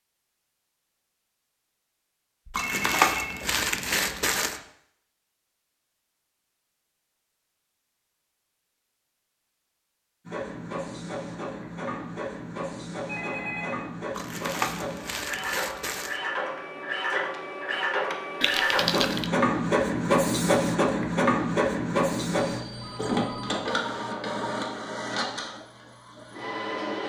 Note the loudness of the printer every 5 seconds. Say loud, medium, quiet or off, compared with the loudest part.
off, off, medium, loud, loud, medium.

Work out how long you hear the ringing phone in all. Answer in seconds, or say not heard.
3 s.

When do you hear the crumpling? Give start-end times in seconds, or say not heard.
2.5-4.6, 14.2-16.2, 18.4-19.3.